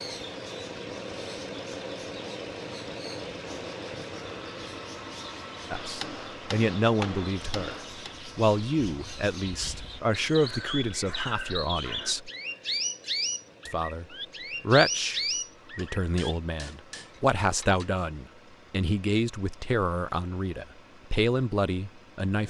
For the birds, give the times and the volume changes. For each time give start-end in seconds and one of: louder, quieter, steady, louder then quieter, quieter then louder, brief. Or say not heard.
0.0-16.4 louder.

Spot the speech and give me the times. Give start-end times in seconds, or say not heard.
5.7-12.3, 13.7-14.1, 14.7-22.4.